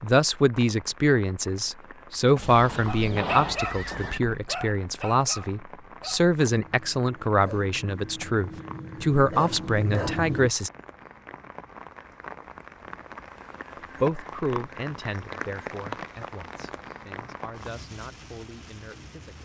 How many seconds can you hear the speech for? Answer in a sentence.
You can hear the speech for 16 seconds altogether.